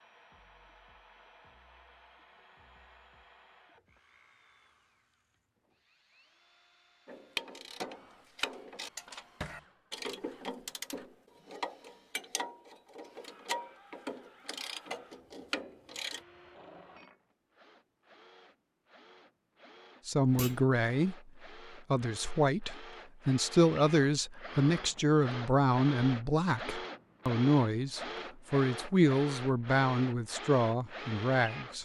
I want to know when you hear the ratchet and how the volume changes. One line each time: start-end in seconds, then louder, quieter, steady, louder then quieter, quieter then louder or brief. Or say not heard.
7.0-16.2 steady.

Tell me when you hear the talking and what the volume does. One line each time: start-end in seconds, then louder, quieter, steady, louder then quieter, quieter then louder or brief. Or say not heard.
20.1-21.1 brief
21.9-31.8 steady.